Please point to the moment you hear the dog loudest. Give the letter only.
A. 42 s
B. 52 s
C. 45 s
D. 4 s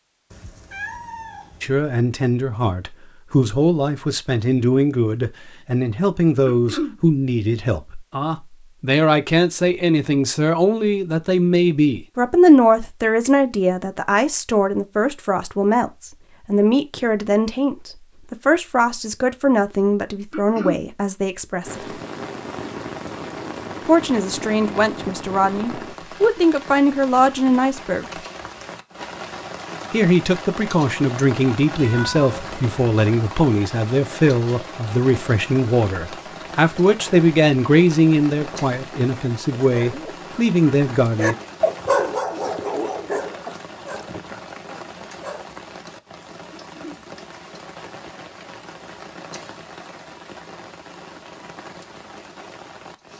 A.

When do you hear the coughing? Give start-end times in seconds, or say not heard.
6.5-7.0, 20.3-20.9, 46.5-47.0.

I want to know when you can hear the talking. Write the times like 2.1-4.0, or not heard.
1.6-21.9, 23.9-28.1, 29.9-41.4.